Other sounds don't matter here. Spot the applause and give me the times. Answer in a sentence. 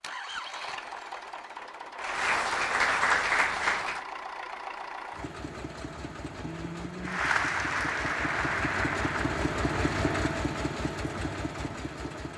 You can hear the applause from 2.0 to 4.0 s and from 7.0 to 10.3 s.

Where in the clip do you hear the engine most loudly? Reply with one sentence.
The volume of the engine peaks at 10 seconds.